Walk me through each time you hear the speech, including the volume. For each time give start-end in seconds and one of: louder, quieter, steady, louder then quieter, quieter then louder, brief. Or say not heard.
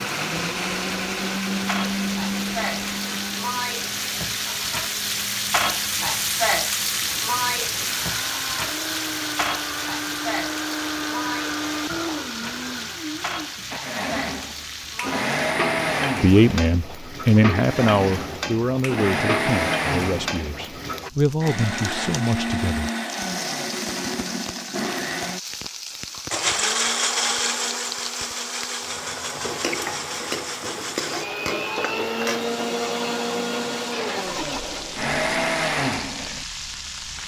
16.2-22.9 quieter.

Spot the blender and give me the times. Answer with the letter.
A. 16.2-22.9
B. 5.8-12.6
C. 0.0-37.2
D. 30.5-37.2
C.